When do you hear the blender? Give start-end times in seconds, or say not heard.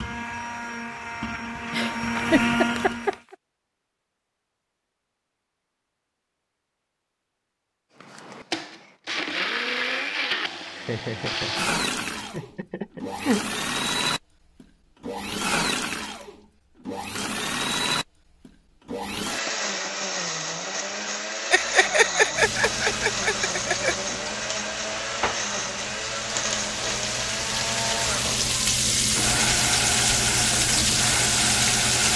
0.0-3.2, 8.0-32.1.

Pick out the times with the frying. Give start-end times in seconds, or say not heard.
22.3-32.1.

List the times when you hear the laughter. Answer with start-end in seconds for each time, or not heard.
1.7-3.4, 10.8-13.4, 21.5-23.9.